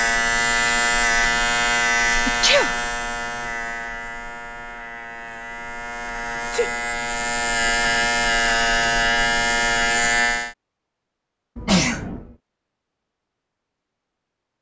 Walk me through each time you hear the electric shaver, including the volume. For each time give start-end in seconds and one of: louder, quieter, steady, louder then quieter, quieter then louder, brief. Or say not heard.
0.0-10.6 quieter then louder.